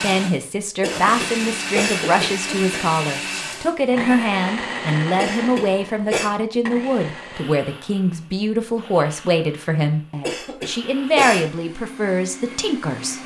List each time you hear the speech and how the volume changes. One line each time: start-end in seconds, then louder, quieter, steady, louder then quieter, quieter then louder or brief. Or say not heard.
0.0-13.2 steady.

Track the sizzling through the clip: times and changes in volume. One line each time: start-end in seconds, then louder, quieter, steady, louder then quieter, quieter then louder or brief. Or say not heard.
not heard.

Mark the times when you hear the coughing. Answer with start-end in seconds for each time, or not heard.
0.8-2.8, 5.2-6.3, 10.2-11.5.